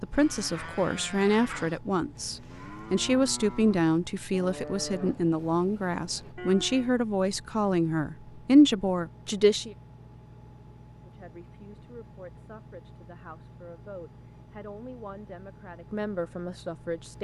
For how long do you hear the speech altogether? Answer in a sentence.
The speech can be heard for 16 seconds in total.